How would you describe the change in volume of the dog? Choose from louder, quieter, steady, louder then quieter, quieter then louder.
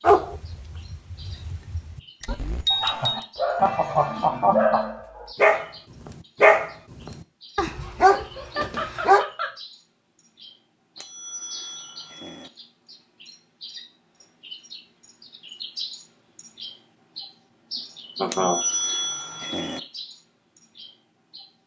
quieter then louder.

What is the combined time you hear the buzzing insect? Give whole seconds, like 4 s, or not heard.
not heard.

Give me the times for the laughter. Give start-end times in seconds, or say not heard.
2.7-5.0, 8.1-9.6, 18.1-18.6.